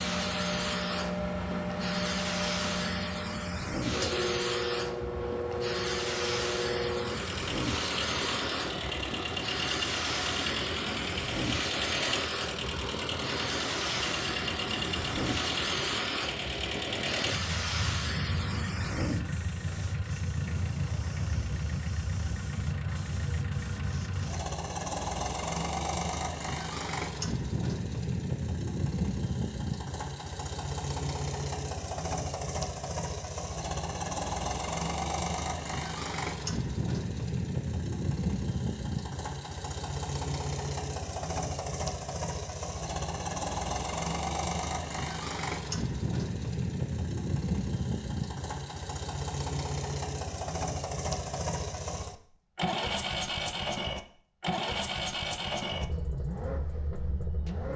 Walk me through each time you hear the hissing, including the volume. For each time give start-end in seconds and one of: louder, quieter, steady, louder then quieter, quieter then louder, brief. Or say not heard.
0.0-24.4 quieter.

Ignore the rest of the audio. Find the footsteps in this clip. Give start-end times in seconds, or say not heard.
not heard.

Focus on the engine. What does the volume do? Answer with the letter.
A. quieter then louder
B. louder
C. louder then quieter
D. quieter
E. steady
E.